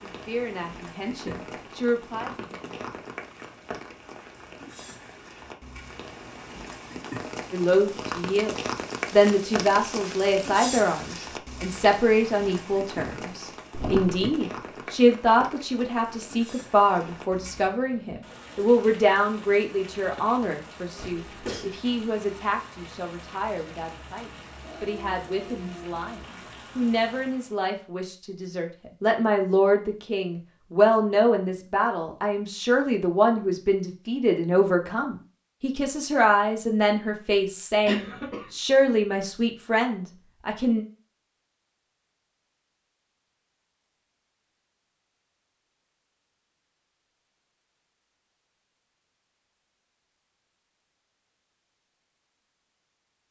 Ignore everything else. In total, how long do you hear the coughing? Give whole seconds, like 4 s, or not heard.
2 s.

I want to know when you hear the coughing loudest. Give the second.
38 s.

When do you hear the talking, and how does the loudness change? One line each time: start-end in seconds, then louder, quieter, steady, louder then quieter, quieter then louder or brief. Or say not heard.
0.0-2.8 brief
7.5-40.9 quieter then louder.